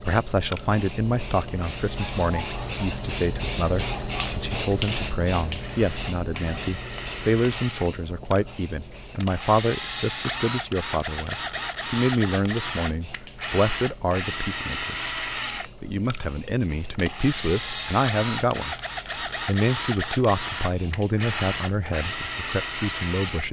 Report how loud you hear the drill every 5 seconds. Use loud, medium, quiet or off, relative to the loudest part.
medium, medium, loud, loud, loud.